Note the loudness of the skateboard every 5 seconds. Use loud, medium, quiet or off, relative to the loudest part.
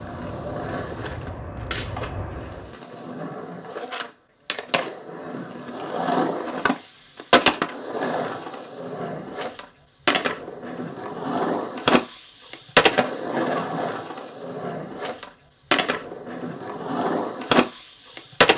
medium, loud, loud, loud.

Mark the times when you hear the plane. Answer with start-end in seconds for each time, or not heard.
0.0-2.8.